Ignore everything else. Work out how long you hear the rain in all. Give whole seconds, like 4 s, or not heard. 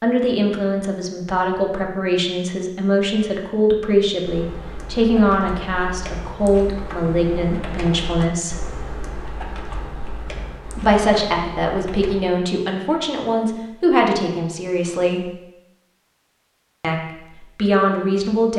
not heard.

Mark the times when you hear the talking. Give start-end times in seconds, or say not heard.
0.0-8.7, 10.8-15.3, 16.8-18.5.